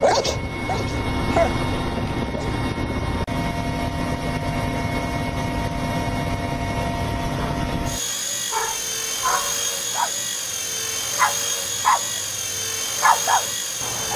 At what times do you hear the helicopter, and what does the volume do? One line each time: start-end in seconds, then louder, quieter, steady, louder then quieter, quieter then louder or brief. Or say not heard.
0.0-14.1 steady.